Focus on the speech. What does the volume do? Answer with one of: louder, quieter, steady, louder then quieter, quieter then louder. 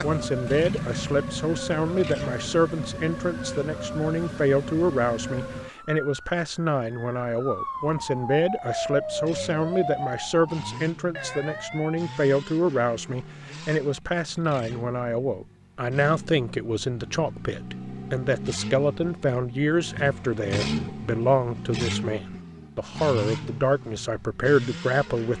steady.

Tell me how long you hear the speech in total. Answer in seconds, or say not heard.
25 s.